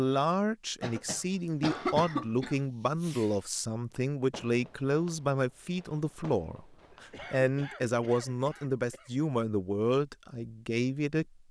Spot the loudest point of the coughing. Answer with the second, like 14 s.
2 s.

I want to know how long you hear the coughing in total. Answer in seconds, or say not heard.
4 s.